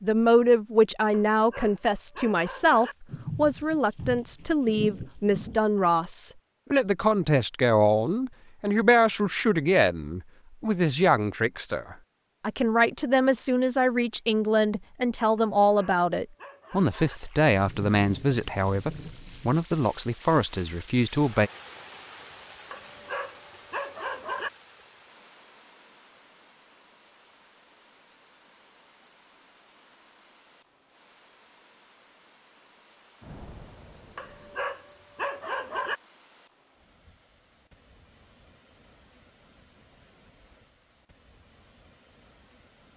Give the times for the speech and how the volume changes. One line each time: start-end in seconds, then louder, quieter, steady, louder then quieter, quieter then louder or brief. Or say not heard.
0.0-21.5 steady.